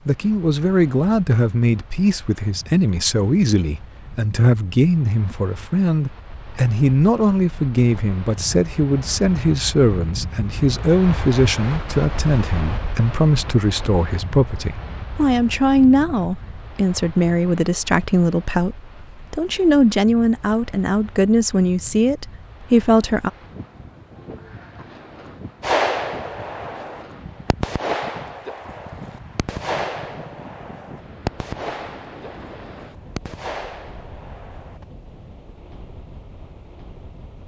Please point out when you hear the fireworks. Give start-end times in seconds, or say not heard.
25.6-34.9.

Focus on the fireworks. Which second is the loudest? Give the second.
26 s.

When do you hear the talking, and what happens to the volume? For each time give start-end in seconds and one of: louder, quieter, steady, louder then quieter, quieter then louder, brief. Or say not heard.
0.1-23.3 steady.